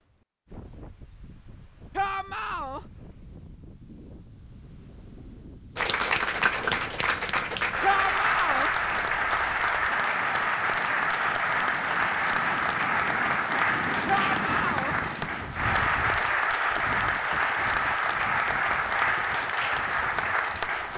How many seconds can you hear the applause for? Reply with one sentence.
You can hear the applause for 15 seconds altogether.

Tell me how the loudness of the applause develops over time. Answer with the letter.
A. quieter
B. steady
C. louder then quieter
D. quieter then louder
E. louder
B.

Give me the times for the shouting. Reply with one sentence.
The shouting can be heard from 1.9 to 2.9 s, from 7.8 to 8.7 s and from 14.1 to 14.9 s.